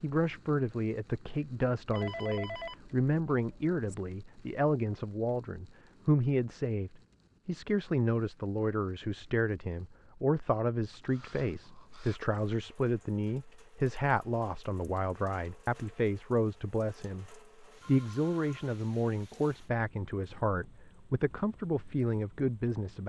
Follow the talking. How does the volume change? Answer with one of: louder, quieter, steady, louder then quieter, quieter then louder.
steady.